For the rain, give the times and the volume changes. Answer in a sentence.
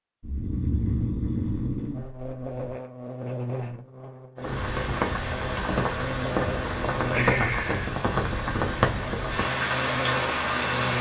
The rain can be heard from 4.3 to 10.9 s, at a steady volume.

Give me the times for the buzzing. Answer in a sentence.
The buzzing can be heard from 1.9 to 10.9 s.